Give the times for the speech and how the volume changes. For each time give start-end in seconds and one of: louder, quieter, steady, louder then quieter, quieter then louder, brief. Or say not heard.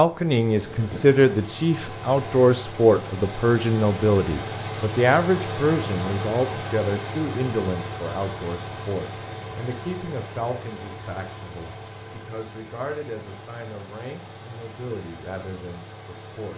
0.0-16.5 quieter.